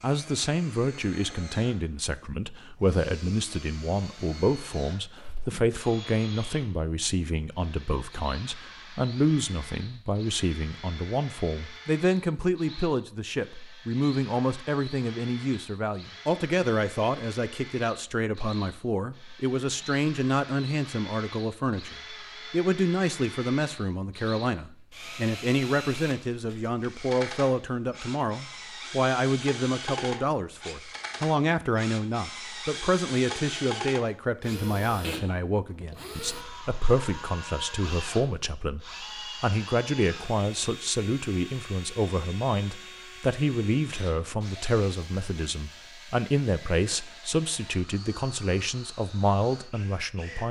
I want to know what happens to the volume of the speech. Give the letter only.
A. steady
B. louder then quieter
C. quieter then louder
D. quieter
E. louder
A.